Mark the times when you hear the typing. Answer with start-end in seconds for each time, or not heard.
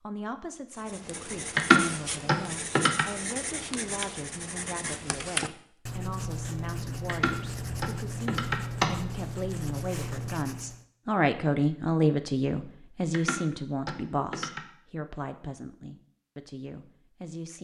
1.6-3.0, 7.0-8.9, 13.1-14.6.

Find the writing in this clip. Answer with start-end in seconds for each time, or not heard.
0.8-10.8.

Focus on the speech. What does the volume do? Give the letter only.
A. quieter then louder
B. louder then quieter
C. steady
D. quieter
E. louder
B.